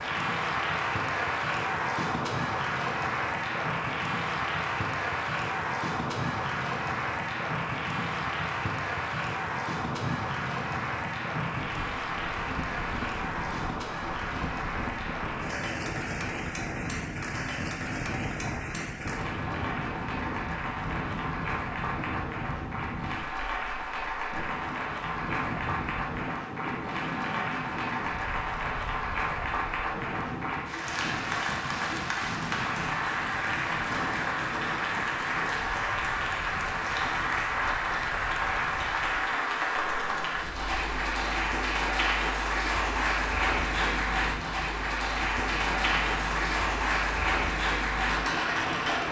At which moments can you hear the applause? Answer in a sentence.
The applause can be heard from 0.0 to 49.0 s.